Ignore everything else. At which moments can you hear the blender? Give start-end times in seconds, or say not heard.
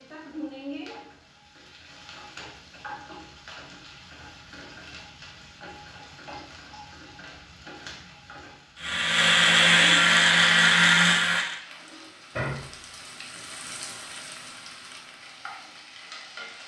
8.8-11.6.